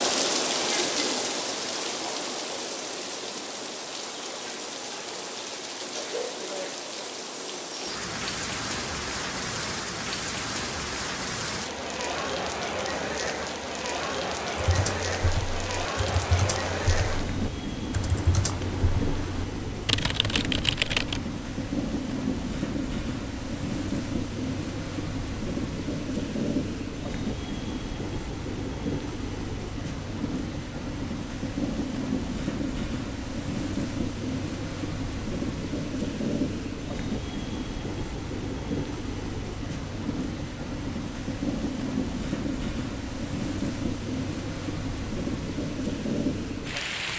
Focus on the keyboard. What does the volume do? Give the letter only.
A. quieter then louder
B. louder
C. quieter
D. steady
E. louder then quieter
B.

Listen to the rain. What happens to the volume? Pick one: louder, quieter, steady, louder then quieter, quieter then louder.
steady.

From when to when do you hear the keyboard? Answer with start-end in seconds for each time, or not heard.
14.6-21.2.